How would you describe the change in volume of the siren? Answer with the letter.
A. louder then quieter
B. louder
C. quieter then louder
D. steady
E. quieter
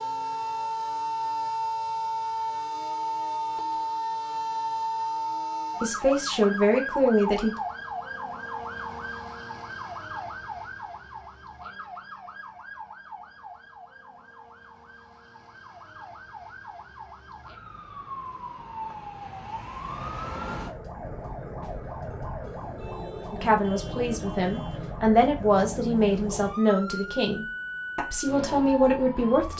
C.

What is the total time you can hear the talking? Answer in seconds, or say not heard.
8 s.